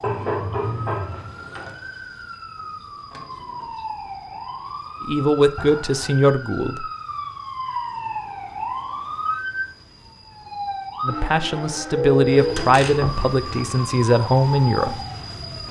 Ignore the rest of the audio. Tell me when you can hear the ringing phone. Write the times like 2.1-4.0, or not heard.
0.0-1.4, 11.9-13.8.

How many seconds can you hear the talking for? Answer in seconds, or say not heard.
6 s.